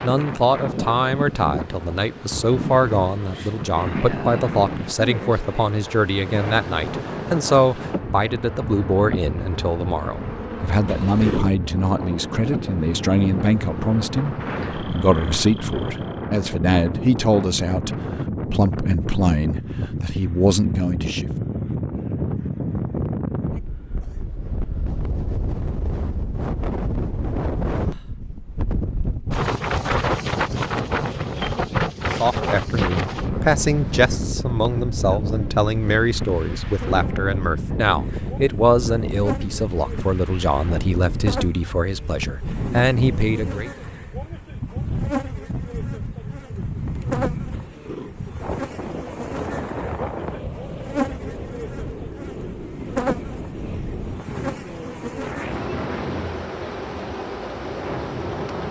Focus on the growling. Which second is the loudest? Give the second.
11 s.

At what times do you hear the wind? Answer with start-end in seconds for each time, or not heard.
0.0-58.6.